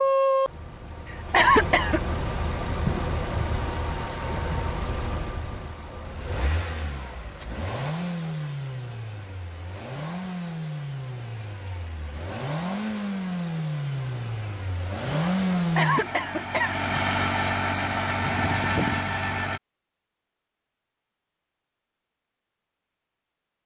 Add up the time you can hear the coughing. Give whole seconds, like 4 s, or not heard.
2 s.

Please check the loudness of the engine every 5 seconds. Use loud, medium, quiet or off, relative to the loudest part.
loud, medium, medium, loud, off.